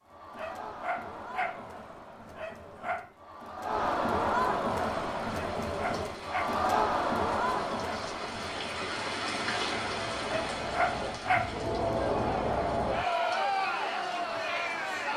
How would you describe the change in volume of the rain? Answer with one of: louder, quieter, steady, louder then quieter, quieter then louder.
louder then quieter.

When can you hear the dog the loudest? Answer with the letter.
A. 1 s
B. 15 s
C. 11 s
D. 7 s
C.